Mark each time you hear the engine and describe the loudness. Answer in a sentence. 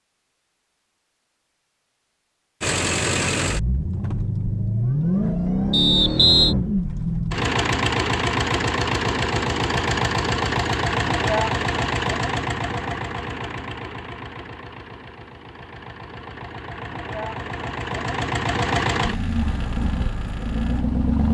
You can hear the engine from 2.6 to 21.2 s, getting quieter then louder.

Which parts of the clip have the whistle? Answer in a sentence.
You can hear the whistle from 5.7 to 6.5 s.